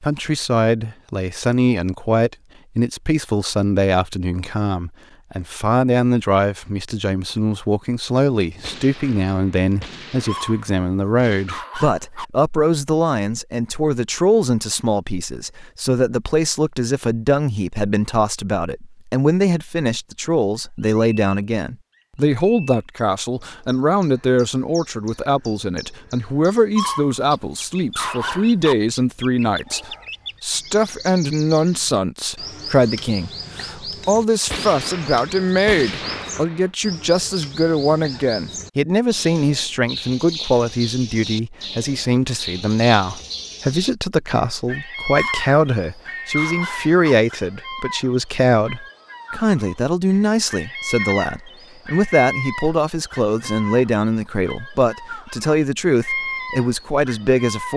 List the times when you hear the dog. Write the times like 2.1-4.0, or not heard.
10.2-12.2, 26.8-28.8, 45.1-47.1.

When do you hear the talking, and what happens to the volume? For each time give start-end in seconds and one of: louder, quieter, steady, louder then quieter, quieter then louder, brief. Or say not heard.
0.0-57.7 steady.